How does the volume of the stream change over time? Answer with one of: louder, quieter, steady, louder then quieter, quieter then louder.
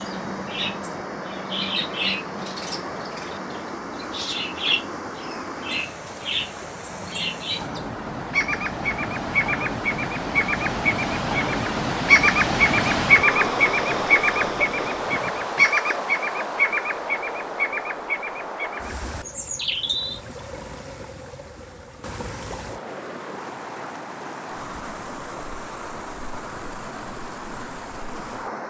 louder then quieter.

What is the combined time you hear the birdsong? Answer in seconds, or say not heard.
20 s.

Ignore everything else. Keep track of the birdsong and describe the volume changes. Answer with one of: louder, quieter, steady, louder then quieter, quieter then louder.
louder then quieter.